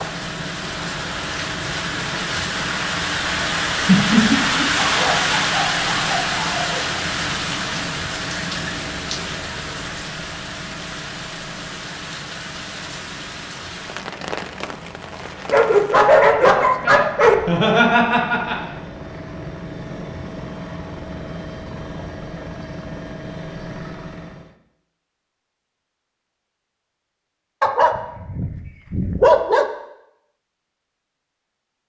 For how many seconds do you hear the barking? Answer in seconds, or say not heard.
6 s.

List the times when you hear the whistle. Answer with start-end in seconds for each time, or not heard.
not heard.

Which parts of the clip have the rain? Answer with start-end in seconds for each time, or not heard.
0.0-16.1.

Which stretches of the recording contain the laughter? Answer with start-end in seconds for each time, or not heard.
3.7-4.7, 17.4-18.7.